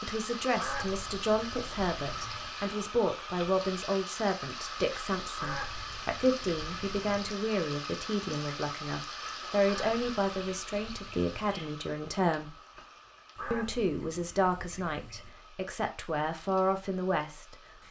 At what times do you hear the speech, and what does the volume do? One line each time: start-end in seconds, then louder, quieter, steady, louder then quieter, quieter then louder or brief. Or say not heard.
0.0-12.6 steady
13.5-17.6 quieter then louder.